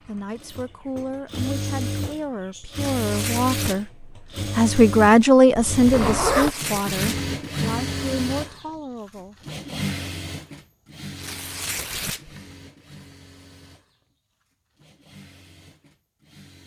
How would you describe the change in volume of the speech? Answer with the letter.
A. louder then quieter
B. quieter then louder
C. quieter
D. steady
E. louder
A.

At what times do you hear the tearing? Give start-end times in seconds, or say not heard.
2.7-3.8, 6.3-7.3, 11.2-12.3.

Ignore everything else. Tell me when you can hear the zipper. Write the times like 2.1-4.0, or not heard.
5.5-6.5.